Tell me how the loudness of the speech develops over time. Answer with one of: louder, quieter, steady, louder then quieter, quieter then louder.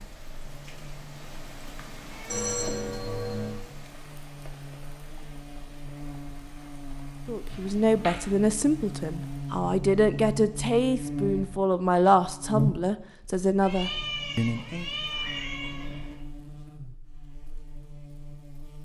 steady.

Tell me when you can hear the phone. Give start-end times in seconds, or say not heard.
2.3-3.6.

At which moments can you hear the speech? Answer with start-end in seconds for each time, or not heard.
7.2-14.8.